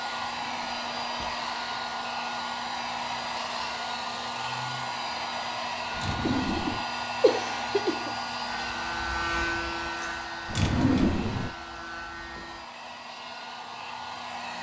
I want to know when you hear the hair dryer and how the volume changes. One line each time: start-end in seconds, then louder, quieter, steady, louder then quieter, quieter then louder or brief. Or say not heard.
0.0-14.5 quieter.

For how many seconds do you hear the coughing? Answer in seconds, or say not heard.
2 s.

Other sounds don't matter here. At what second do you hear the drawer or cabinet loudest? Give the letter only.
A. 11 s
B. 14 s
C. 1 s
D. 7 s
A.